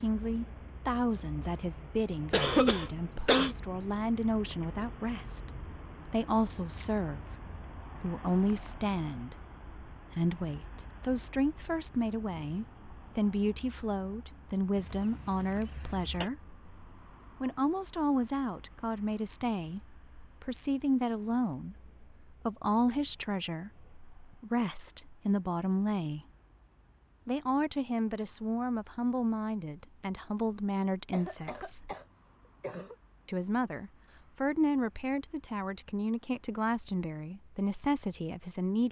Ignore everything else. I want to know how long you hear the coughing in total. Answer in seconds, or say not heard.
5 s.